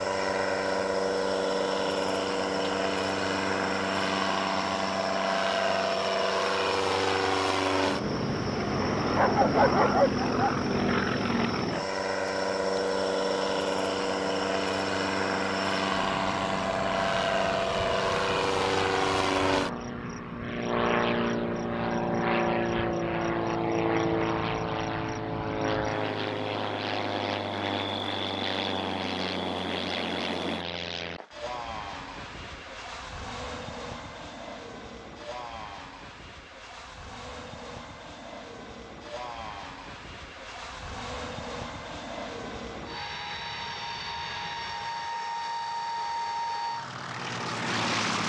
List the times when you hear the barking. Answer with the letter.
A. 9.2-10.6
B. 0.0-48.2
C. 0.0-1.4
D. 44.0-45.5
A.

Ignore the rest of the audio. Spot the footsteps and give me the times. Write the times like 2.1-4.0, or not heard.
not heard.